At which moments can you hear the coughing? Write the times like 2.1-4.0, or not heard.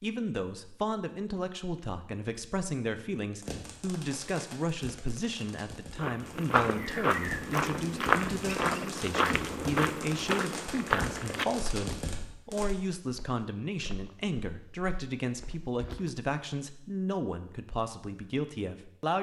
not heard.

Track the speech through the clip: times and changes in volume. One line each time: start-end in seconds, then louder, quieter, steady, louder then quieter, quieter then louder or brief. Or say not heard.
0.0-19.1 steady.